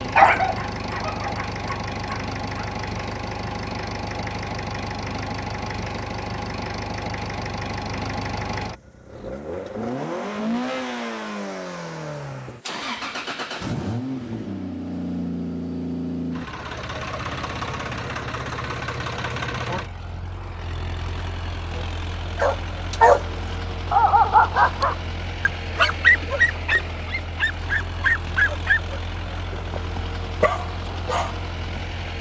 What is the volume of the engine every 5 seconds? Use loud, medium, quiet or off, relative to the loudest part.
loud, loud, loud, loud, medium, medium, medium.